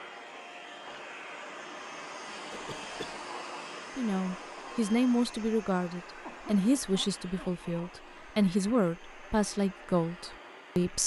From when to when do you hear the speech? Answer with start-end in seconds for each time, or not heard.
4.0-11.0.